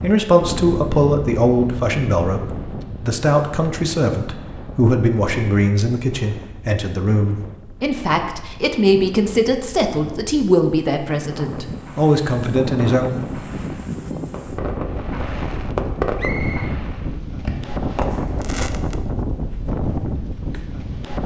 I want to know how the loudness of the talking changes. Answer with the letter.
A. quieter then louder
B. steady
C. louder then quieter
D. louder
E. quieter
B.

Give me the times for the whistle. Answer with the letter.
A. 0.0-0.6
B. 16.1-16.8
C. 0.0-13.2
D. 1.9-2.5
B.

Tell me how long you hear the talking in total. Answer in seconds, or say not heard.
13 s.